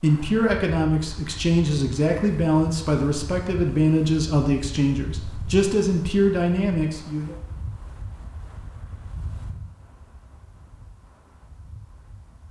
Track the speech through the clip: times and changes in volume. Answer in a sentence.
You can hear the speech from 0.0 to 7.3 s, at a steady volume.